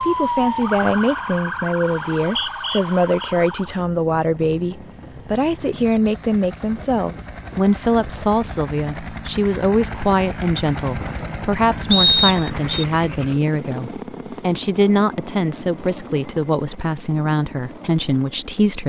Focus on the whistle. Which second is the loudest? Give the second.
12 s.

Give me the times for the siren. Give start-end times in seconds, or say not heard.
0.0-3.8.